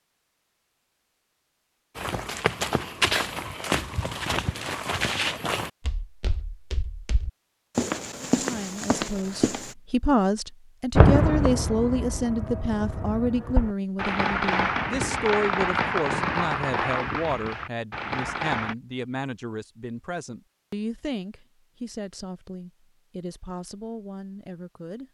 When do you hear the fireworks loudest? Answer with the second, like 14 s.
11 s.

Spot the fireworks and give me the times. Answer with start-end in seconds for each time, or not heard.
10.9-18.8.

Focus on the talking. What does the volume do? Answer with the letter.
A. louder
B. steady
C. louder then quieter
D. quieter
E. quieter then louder
D.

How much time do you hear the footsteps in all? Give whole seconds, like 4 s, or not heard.
8 s.